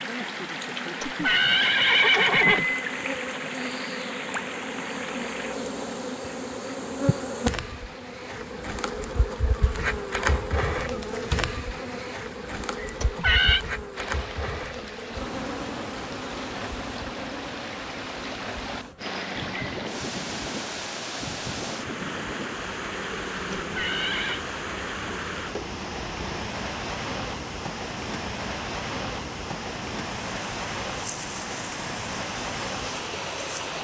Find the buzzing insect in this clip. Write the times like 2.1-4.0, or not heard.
0.0-33.7.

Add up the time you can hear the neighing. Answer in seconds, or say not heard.
3 s.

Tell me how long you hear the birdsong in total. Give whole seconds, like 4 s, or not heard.
not heard.